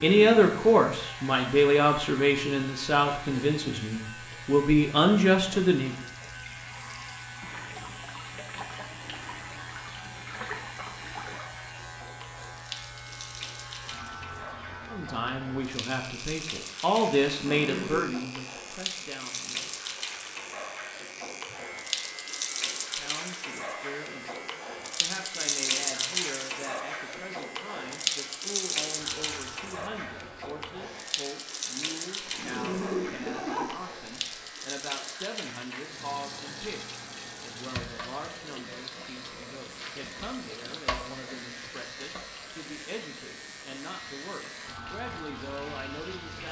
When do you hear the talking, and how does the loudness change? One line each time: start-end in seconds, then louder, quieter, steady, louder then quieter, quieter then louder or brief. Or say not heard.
0.0-6.0 quieter then louder
14.9-19.8 louder then quieter
22.9-46.4 steady.